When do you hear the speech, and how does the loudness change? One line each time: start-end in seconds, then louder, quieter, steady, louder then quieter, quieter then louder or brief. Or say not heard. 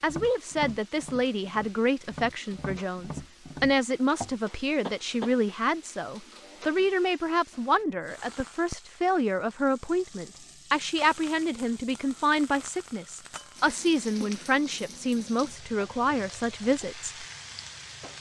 0.0-17.1 steady.